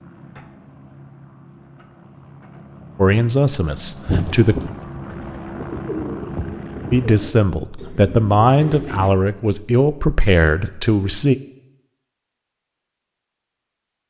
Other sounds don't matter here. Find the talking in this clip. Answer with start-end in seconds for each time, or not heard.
3.0-4.5, 6.9-11.3.